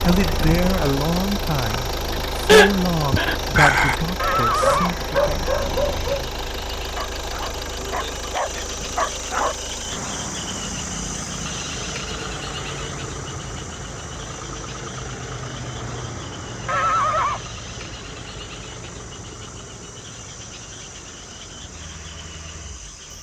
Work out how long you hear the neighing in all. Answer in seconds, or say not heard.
2 s.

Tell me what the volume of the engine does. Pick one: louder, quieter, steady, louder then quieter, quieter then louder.
quieter.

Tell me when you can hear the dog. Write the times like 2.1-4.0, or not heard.
2.5-6.3, 7.0-9.6.